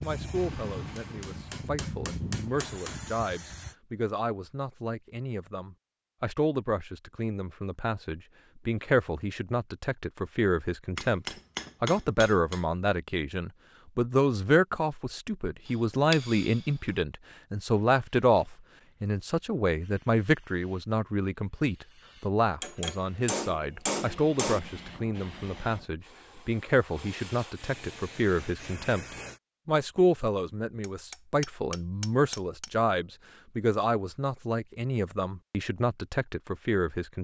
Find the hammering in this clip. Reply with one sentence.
You can hear the hammering from 0.3 to 3.0 s, from 10.9 to 12.7 s, from 15.7 to 16.9 s, from 22.6 to 24.6 s and from 30.8 to 32.8 s.